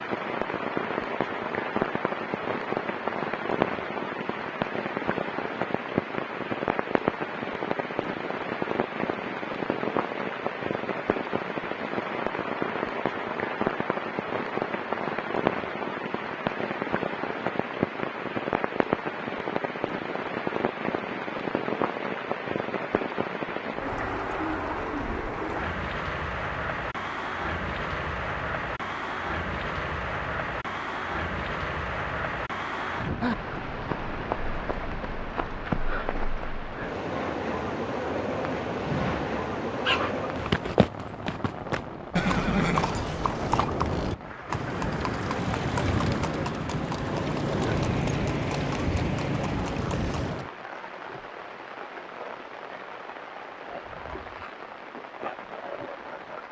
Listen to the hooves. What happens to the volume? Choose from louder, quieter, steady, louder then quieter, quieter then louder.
steady.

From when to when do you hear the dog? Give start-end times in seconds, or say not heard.
38.8-40.3.